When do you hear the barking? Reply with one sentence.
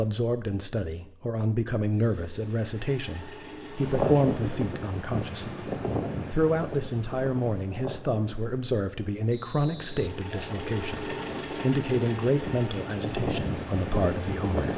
You can't hear the barking here.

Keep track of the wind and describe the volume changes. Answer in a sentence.
The loudness of the wind goes down, then up.